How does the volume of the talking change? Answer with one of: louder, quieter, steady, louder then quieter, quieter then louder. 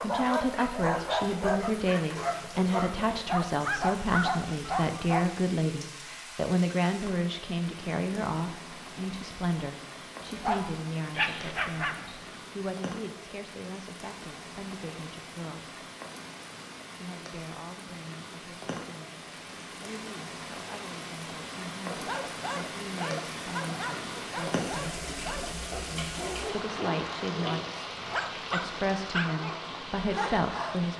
quieter then louder.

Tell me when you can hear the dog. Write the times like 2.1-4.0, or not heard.
0.0-5.3, 10.3-12.3, 21.9-30.9.